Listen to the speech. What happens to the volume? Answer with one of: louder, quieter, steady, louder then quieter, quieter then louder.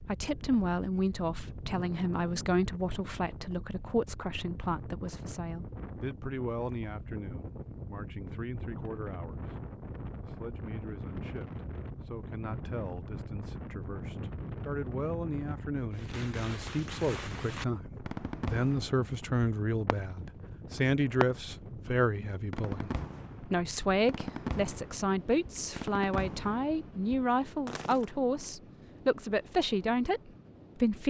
quieter then louder.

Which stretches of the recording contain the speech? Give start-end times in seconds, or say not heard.
0.0-31.0.